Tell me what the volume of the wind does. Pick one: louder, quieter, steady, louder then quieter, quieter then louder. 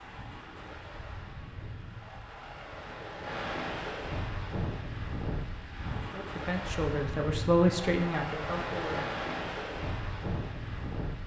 louder.